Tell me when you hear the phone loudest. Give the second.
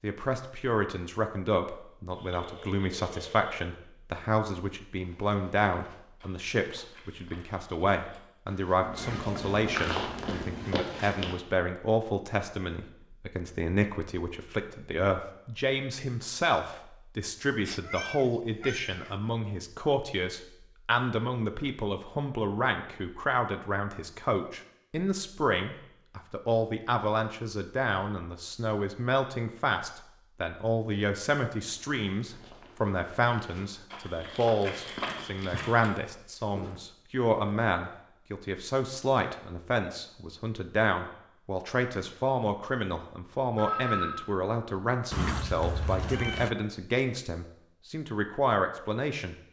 44 s.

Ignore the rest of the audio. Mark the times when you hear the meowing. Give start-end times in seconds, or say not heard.
8.8-10.8, 17.6-19.1, 45.1-46.5.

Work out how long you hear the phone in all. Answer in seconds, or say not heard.
2 s.